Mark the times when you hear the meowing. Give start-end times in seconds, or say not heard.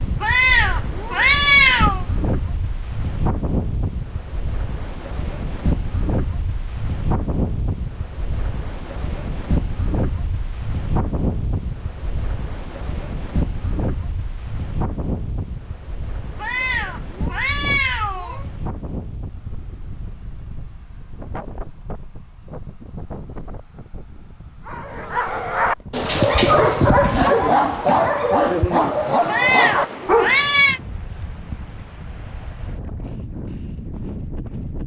0.2-2.0, 16.4-18.4, 29.2-30.8.